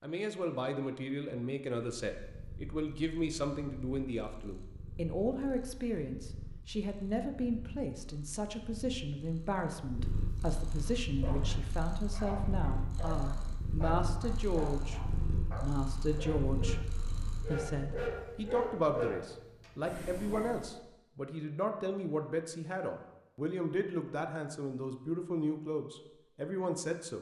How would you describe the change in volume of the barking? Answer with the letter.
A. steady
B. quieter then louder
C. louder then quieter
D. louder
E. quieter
D.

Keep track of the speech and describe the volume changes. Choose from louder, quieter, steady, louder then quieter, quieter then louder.
steady.